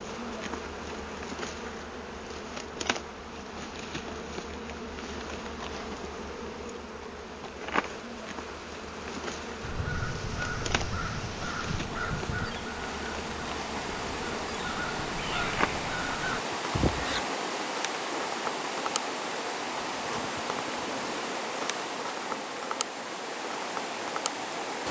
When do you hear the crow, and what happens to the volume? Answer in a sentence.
The crow can be heard from 9.6 to 17.2 s, getting quieter then louder.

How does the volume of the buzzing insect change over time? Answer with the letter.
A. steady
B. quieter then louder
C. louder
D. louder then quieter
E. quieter
A.